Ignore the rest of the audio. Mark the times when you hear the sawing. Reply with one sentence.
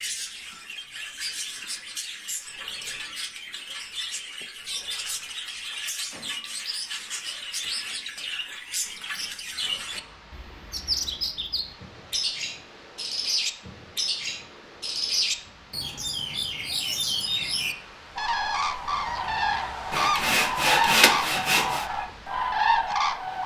You can hear the sawing from 19.9 to 21.9 s.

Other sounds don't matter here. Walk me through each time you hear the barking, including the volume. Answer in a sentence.
You can't hear the barking here.